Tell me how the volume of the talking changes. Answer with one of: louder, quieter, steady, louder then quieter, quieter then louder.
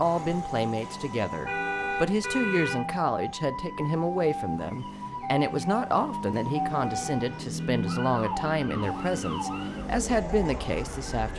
steady.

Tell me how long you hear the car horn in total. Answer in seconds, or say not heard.
3 s.